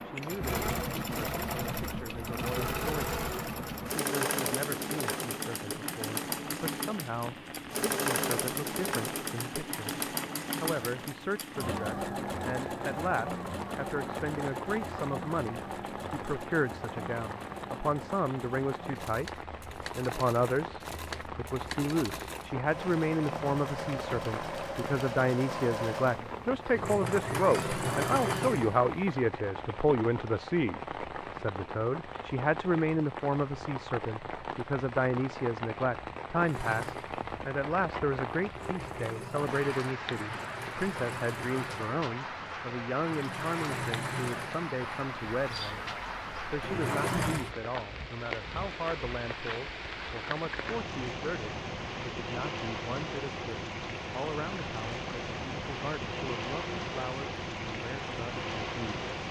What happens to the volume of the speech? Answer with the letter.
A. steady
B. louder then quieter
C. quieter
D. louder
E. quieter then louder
B.